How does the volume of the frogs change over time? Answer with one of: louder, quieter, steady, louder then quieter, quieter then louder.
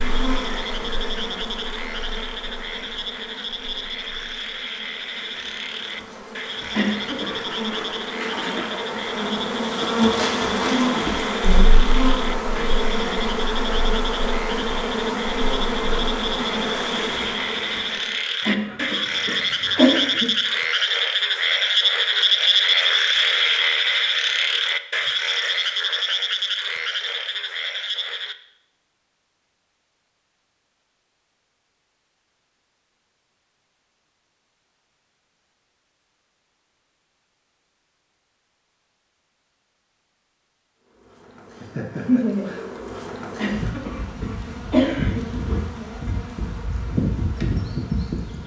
louder.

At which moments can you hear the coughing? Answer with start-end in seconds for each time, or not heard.
6.7-7.4, 18.4-20.4, 43.4-46.0.